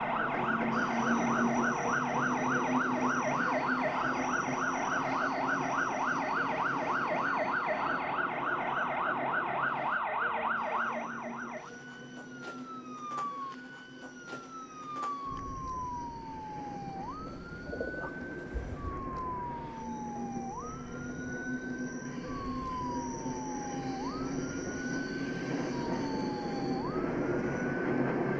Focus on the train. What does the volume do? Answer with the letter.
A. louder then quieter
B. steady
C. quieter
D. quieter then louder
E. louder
D.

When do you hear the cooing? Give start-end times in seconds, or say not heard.
17.2-18.9.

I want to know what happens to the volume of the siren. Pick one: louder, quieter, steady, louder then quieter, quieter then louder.
quieter.